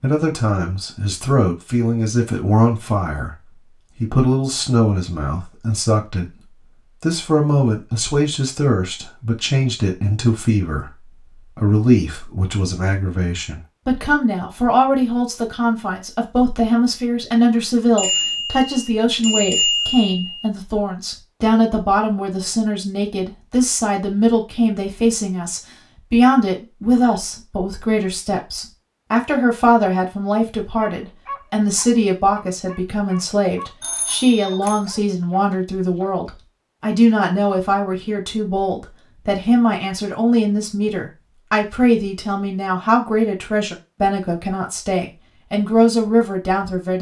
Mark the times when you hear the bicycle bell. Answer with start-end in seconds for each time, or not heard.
17.9-20.4, 33.8-34.8.